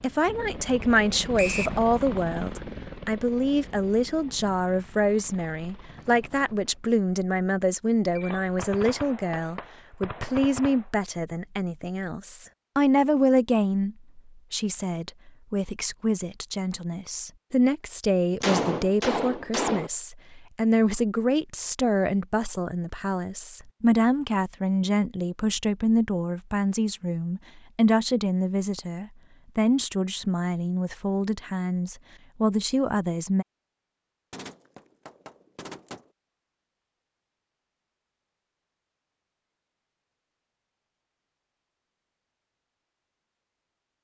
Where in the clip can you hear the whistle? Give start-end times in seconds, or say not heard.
1.4-1.8.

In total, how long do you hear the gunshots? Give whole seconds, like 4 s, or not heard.
6 s.